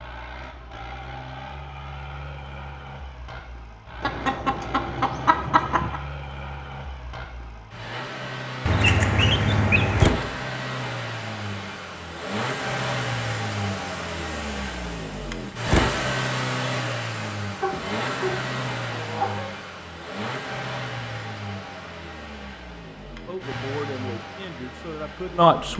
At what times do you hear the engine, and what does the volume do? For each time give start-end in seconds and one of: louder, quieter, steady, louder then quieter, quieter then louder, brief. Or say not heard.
0.0-25.7 louder then quieter.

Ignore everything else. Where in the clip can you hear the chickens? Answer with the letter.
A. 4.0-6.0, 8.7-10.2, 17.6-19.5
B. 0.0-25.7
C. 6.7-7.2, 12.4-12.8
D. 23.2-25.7
A.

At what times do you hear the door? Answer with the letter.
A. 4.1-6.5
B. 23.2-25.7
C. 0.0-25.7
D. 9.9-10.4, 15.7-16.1
D.